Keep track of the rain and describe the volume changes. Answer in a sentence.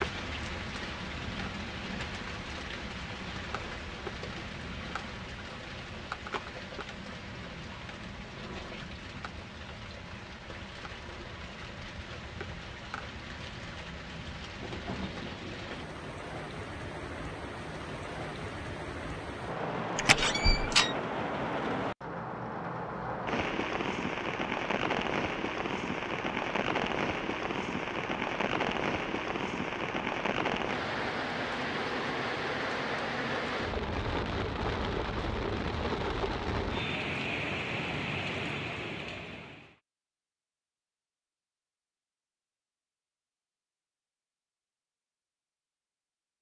The volume of the rain goes up.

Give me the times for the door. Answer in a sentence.
You can hear the door from 19.9 to 20.9 s.